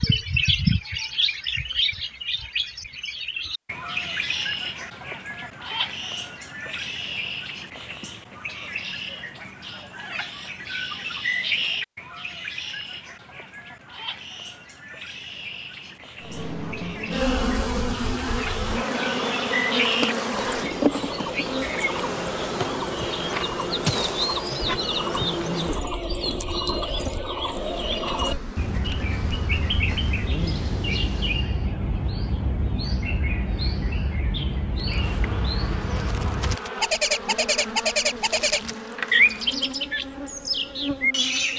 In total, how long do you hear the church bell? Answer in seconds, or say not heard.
not heard.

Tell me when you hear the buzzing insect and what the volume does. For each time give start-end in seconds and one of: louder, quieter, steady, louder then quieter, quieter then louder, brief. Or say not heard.
16.2-31.4 quieter
34.8-41.5 steady.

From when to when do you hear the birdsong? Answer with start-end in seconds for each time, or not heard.
0.0-41.5.